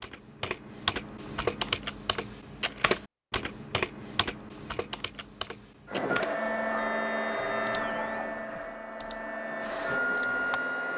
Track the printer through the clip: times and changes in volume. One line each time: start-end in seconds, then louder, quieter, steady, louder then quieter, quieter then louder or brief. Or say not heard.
5.8-10.9 quieter then louder.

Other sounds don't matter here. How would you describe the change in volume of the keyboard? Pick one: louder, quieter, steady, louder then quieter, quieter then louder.
quieter.